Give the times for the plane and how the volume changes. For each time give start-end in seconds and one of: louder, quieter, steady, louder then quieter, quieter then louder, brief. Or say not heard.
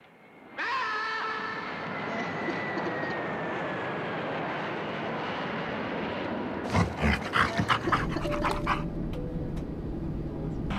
0.0-10.7 steady.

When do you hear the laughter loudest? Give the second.
8 s.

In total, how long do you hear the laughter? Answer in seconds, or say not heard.
2 s.